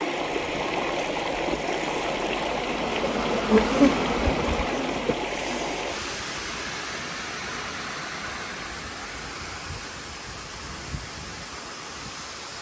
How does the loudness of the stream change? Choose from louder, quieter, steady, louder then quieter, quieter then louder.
quieter.